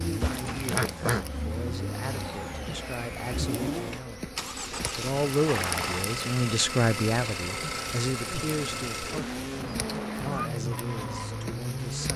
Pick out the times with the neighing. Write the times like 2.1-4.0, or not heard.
0.2-1.2, 4.7-6.0, 9.8-10.5.